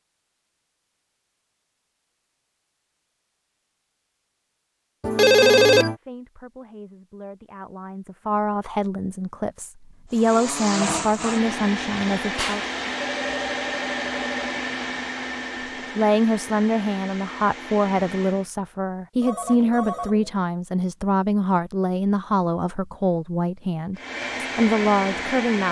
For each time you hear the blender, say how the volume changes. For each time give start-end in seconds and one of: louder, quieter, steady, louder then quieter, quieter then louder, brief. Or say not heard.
10.1-18.5 quieter
23.9-25.6 brief.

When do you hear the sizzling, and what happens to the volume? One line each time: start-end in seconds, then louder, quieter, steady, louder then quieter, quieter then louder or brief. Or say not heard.
not heard.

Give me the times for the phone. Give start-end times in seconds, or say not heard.
5.0-6.0, 12.3-14.4, 19.2-20.4.